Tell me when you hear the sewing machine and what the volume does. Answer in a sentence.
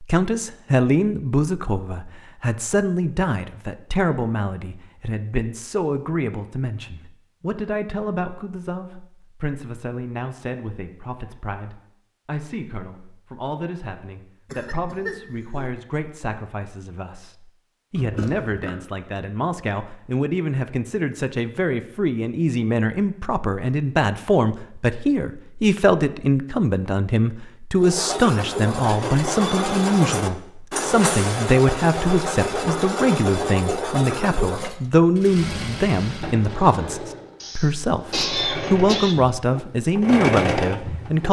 The sewing machine can be heard from 27.8 to 41.2 s, getting quieter then louder.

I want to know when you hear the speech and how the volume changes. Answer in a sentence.
The speech can be heard from 0.0 to 41.2 s, getting quieter then louder.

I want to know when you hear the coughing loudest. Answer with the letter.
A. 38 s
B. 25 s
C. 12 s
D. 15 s
A.